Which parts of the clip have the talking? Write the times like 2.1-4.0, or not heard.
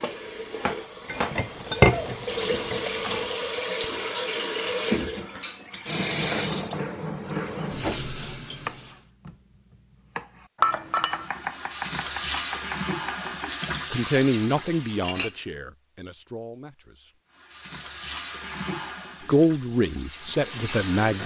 13.9-17.1, 19.2-21.2.